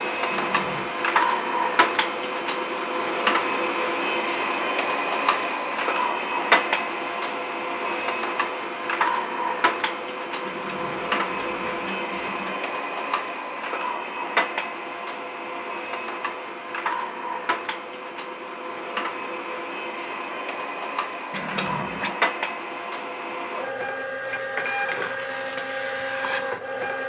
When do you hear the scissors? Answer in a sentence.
The scissors can be heard from 0.3 to 0.9 s, from 10.4 to 12.6 s and from 21.3 to 22.1 s.